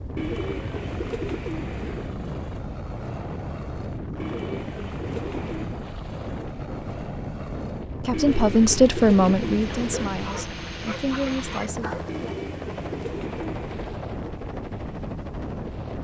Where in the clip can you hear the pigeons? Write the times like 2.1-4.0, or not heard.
0.1-2.1, 4.2-5.8, 8.1-10.2, 12.1-14.1.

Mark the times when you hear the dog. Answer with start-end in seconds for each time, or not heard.
9.8-12.1.